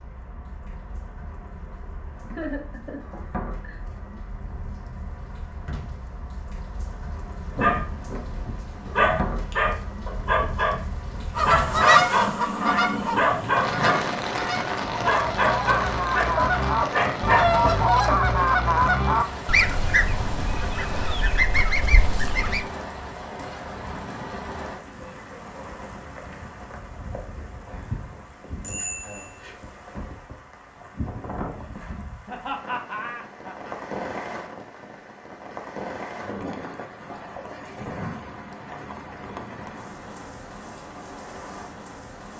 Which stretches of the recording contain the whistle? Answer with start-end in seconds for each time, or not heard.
not heard.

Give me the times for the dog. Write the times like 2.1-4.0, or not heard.
7.5-17.8.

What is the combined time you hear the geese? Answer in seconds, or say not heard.
11 s.